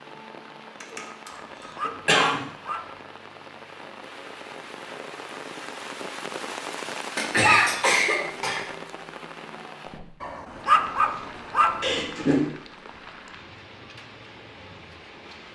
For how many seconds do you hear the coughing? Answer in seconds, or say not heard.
4 s.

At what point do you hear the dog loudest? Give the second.
11 s.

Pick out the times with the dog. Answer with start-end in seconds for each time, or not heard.
1.3-3.0, 10.2-11.9.